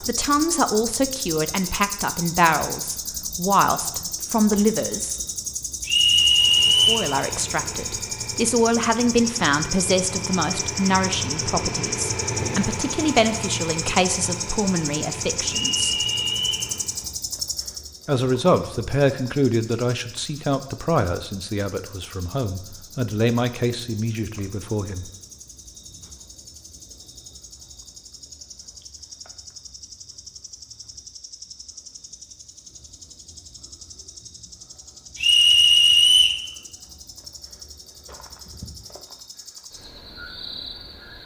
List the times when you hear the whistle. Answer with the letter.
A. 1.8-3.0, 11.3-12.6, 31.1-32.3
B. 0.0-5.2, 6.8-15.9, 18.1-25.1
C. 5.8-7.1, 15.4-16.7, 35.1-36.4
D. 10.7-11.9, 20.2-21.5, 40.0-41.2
C.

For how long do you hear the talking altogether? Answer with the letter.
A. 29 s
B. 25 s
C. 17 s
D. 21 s
D.